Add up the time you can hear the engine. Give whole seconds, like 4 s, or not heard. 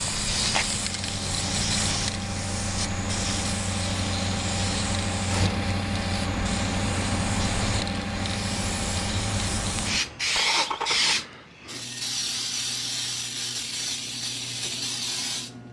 11 s.